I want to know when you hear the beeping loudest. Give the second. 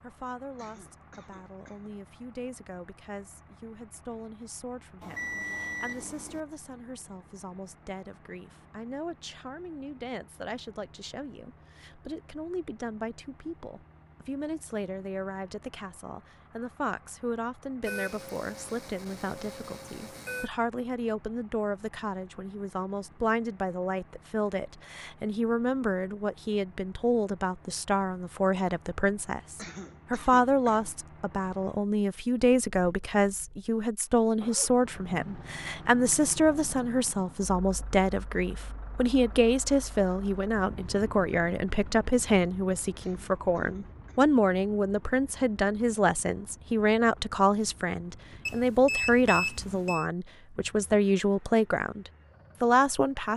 49 s.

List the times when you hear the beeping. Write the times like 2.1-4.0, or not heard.
5.0-6.4, 17.8-20.5, 48.5-50.0.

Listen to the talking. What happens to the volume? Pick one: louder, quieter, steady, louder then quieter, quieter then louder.
louder.